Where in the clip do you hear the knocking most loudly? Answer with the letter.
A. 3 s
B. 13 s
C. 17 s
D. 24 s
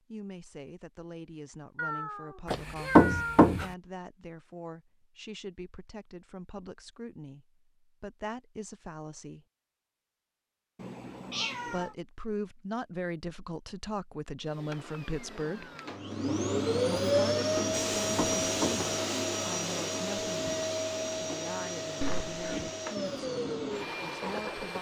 A.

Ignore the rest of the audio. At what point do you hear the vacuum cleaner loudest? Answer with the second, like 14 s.
17 s.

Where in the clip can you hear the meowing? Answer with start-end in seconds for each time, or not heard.
1.8-3.5, 10.8-11.9, 22.0-22.7.